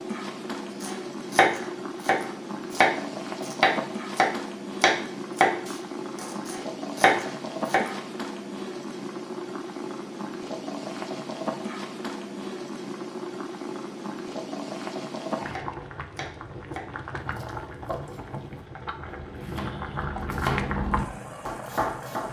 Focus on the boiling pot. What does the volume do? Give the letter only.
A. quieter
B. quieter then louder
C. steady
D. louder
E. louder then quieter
C.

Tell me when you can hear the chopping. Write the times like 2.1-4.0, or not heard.
0.8-8.0, 15.5-22.2.